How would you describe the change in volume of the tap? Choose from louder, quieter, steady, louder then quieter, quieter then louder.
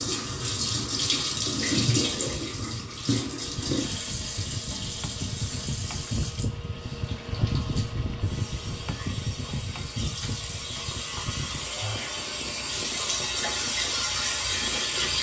quieter then louder.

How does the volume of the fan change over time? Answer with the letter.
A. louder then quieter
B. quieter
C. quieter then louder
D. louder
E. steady
A.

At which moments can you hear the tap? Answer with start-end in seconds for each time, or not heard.
0.0-15.1.